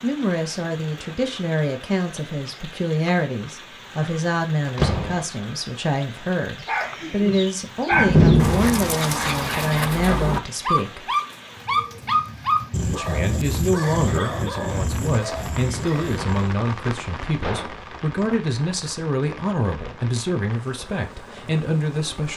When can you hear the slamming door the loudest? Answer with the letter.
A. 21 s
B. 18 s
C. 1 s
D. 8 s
D.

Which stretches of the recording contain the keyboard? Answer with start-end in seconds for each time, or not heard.
not heard.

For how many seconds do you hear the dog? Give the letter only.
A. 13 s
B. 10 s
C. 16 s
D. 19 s
B.